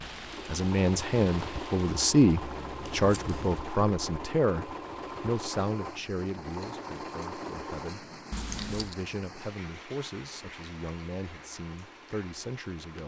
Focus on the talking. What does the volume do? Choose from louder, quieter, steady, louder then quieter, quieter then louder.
quieter.